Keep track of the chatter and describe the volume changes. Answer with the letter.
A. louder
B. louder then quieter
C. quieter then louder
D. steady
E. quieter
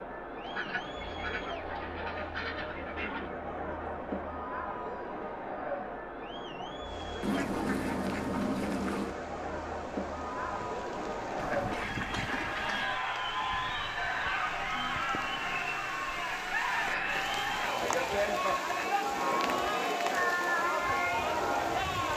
A.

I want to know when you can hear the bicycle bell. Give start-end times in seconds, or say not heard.
not heard.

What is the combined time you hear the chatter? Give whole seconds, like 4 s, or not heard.
22 s.